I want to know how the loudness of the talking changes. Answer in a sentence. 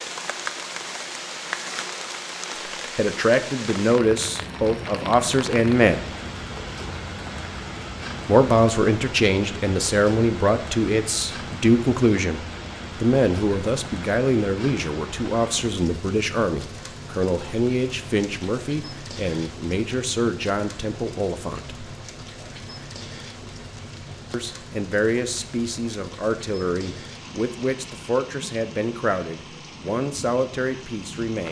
The volume of the talking goes down.